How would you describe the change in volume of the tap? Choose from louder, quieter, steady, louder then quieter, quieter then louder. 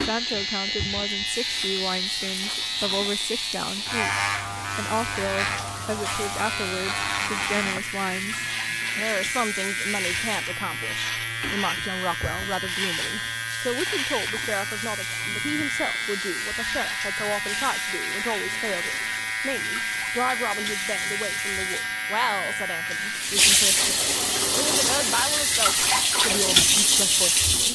louder.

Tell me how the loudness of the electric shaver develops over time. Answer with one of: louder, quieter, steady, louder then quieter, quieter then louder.
steady.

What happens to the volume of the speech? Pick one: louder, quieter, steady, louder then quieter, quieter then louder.
steady.